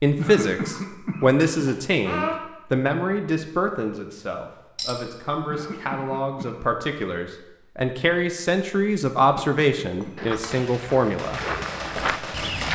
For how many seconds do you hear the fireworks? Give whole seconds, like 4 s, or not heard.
2 s.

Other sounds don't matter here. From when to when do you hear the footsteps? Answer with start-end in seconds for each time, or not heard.
9.9-12.6.